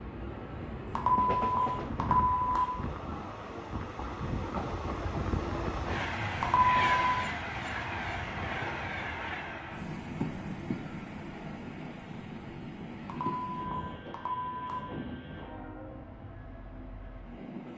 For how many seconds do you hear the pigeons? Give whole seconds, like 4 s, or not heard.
not heard.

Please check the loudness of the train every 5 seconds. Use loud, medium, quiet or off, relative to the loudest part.
loud, loud, medium, medium.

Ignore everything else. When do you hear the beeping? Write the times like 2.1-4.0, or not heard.
0.9-2.6, 6.3-6.8, 13.0-14.7.